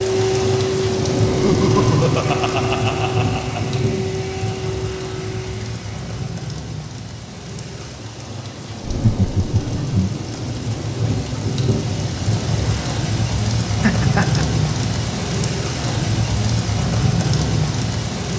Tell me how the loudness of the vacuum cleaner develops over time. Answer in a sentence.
The loudness of the vacuum cleaner goes down.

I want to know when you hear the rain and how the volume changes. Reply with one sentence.
You can hear the rain from 0.0 to 18.3 s, getting quieter then louder.